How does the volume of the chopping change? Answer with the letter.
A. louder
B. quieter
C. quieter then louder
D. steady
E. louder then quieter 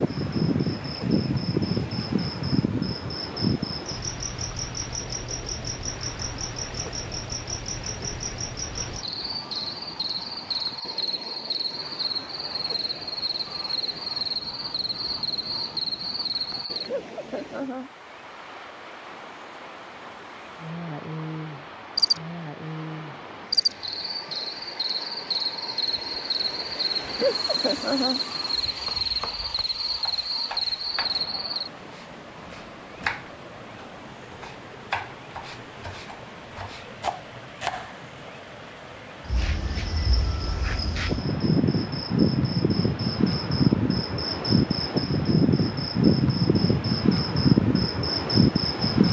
A.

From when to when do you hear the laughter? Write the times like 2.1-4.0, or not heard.
16.9-17.9, 27.1-28.2.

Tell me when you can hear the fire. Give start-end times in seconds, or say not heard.
not heard.